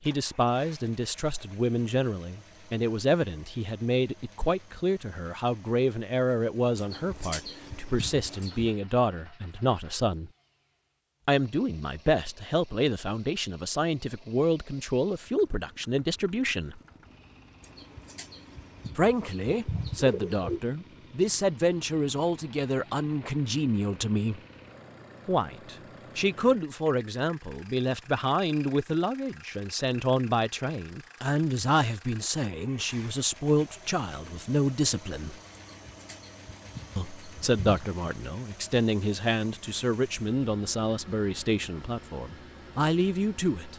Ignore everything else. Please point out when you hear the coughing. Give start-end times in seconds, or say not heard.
not heard.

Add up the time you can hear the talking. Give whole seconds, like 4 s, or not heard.
38 s.